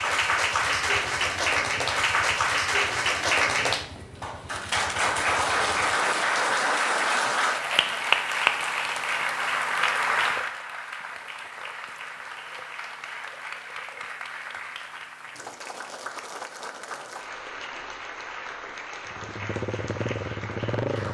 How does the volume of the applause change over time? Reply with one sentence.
The volume of the applause goes down.